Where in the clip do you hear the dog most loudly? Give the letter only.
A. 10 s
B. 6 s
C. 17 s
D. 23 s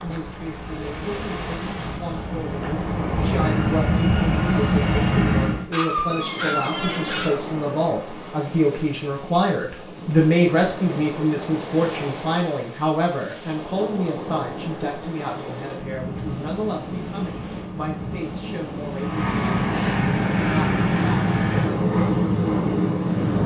B.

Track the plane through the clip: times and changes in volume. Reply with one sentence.
The plane can be heard from 0.1 to 5.7 s, getting louder; and from 18.9 to 23.4 s, at a steady volume.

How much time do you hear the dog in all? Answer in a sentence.
You can hear the dog for 2 seconds altogether.